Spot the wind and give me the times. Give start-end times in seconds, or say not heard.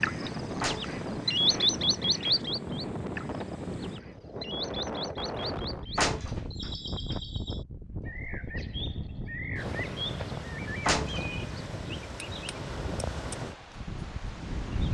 0.0-14.8.